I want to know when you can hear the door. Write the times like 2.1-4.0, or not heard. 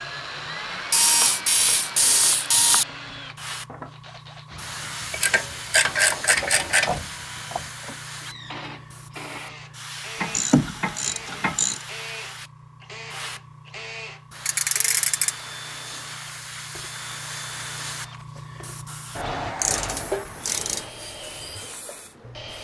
6.8-8.0.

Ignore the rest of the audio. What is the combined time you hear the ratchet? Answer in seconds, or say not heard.
8 s.